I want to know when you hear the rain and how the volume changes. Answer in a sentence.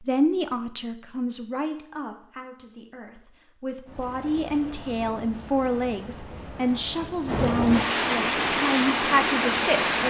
You can hear the rain from 3.9 to 10.0 s, getting louder.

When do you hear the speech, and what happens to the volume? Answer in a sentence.
The speech can be heard from 0.0 to 10.0 s, getting quieter then louder.